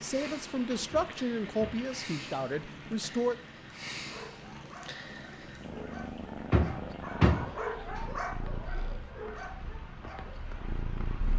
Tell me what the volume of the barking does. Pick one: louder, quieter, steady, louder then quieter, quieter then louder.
louder then quieter.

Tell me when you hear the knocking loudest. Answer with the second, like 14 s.
7 s.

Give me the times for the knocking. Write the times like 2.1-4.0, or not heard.
0.9-1.9, 6.5-7.5.